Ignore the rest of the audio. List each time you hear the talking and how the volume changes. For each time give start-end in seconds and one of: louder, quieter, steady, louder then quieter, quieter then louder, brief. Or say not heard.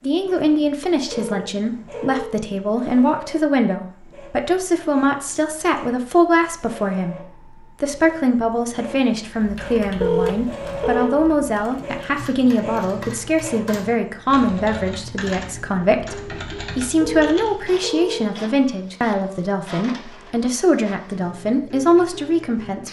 0.0-22.8 steady.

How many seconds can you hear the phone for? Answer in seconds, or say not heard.
4 s.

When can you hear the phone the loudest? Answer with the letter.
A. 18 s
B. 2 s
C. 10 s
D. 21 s
C.